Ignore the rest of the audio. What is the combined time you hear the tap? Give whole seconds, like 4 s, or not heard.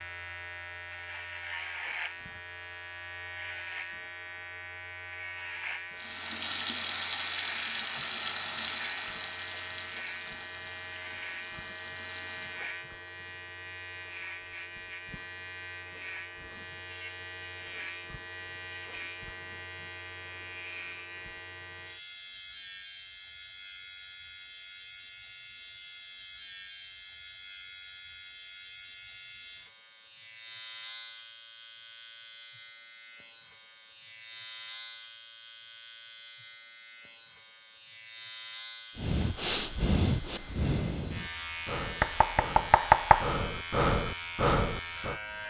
7 s.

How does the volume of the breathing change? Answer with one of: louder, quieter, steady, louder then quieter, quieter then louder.
quieter then louder.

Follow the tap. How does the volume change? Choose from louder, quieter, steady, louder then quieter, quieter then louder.
quieter.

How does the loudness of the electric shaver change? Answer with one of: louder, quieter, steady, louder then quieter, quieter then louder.
steady.